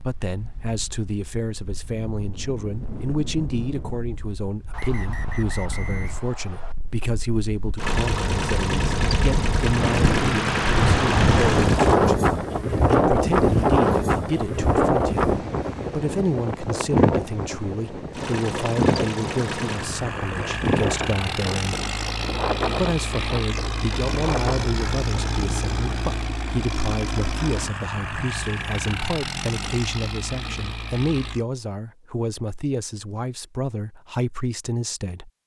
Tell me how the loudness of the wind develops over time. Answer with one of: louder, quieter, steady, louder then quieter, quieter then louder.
louder then quieter.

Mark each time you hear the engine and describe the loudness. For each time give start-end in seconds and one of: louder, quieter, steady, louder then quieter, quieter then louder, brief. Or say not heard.
7.8-12.0 steady
18.1-31.4 steady.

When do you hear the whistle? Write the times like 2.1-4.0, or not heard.
4.7-6.8.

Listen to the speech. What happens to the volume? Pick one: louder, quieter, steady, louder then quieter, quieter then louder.
steady.